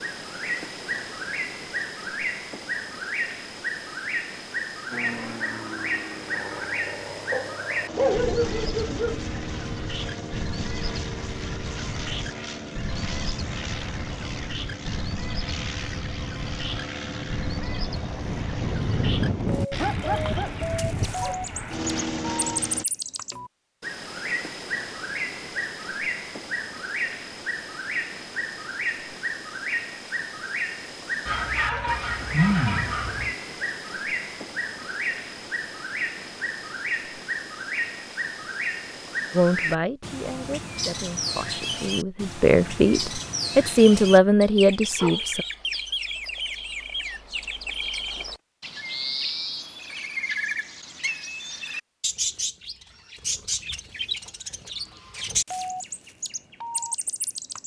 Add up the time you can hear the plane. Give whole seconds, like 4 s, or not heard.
18 s.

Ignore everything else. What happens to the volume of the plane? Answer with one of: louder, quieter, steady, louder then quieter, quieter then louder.
louder.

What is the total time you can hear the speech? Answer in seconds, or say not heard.
6 s.